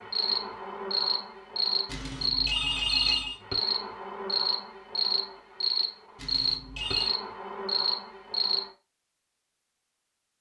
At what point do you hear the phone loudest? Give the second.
3 s.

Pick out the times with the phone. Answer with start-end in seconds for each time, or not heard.
1.9-3.4, 6.2-7.1.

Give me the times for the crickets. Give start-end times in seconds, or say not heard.
0.0-8.7.